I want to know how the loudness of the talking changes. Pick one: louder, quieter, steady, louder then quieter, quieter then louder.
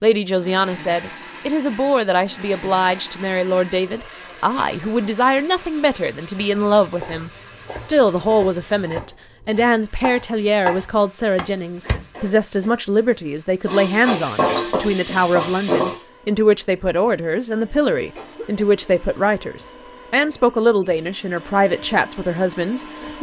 steady.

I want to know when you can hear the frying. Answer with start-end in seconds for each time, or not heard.
13.7-16.0.